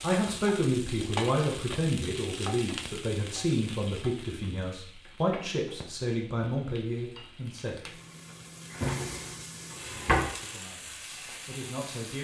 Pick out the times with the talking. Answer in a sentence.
The talking can be heard from 0.0 to 8.0 s and from 10.4 to 12.1 s.